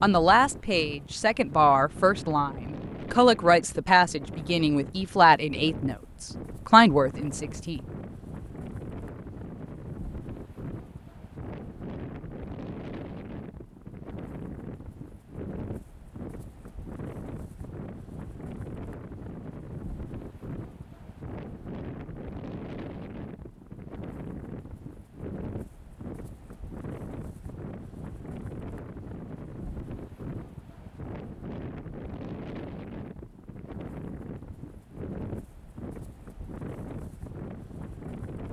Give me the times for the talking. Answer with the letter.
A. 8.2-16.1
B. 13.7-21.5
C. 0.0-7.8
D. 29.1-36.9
C.